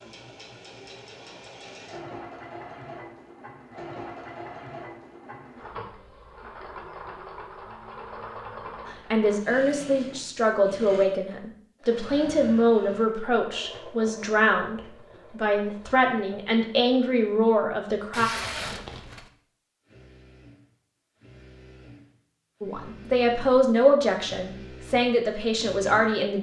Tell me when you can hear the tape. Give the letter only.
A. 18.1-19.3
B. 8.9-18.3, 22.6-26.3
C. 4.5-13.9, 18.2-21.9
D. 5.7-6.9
A.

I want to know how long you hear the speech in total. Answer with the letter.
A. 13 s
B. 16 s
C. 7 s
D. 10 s
A.